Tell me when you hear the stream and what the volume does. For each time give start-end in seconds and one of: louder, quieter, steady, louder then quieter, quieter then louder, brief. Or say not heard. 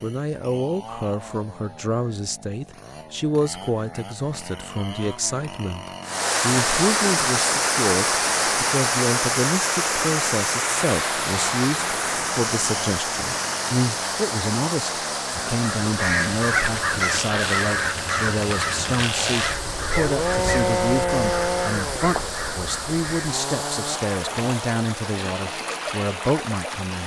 6.0-27.0 quieter.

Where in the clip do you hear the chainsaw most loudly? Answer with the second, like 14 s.
21 s.